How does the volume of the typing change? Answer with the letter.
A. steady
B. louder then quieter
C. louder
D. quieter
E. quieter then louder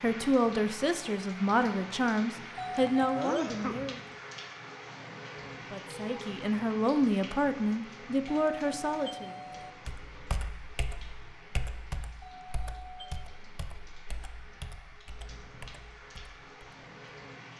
D.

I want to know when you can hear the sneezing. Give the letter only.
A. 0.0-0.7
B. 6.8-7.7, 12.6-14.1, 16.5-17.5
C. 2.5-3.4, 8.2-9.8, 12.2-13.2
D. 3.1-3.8
D.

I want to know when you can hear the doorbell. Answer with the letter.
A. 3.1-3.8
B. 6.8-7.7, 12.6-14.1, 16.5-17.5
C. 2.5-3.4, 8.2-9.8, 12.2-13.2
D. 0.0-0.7
C.